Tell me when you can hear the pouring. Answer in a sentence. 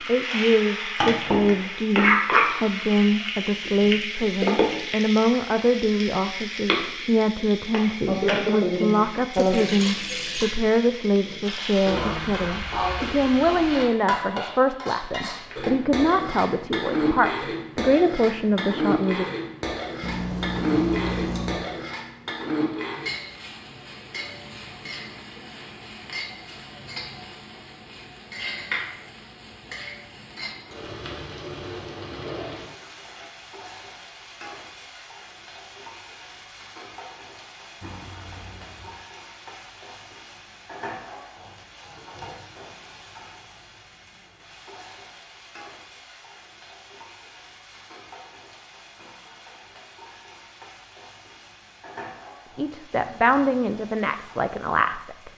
The pouring can be heard from 9.3 to 10.6 s, from 20.0 to 21.6 s and from 37.8 to 39.0 s.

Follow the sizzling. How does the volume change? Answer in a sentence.
The loudness of the sizzling goes down.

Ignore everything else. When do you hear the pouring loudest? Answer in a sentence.
The volume of the pouring peaks at 21 seconds.